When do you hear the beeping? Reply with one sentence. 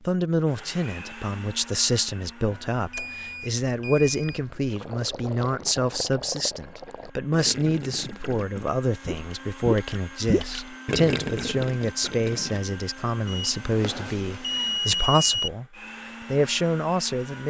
You can hear the beeping from 2.5 to 4.5 s and from 13.2 to 15.5 s.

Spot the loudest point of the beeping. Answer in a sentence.
The volume of the beeping peaks at 15 seconds.